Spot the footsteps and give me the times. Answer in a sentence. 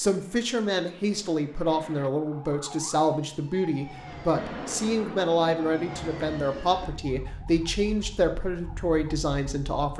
The footsteps can't be heard in this clip.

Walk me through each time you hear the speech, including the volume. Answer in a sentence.
You can hear the speech from 0.0 to 9.9 s, at a steady volume.